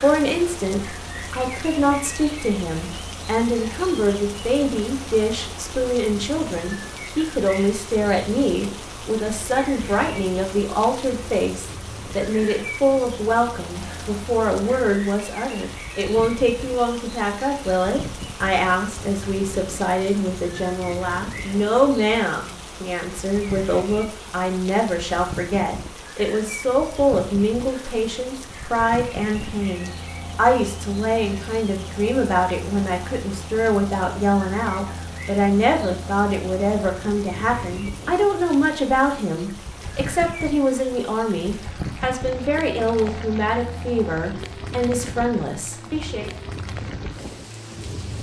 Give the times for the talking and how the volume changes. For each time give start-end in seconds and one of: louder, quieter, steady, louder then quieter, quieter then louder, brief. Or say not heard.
0.0-46.3 steady.